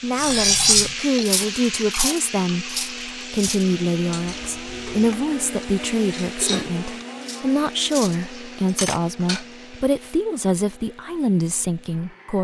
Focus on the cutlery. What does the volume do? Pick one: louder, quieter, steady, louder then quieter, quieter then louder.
quieter then louder.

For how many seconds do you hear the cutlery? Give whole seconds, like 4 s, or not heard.
9 s.